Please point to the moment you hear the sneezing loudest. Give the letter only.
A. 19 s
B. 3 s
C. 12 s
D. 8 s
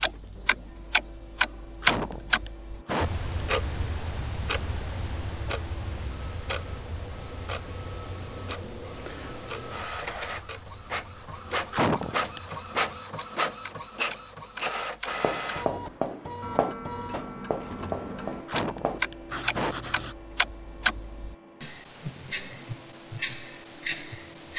C.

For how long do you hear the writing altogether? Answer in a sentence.
You can hear the writing for 5 seconds altogether.